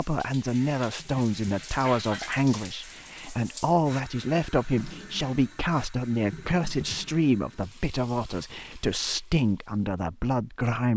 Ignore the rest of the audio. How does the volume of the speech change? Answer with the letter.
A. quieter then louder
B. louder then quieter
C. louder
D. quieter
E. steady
E.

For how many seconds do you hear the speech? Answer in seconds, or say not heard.
11 s.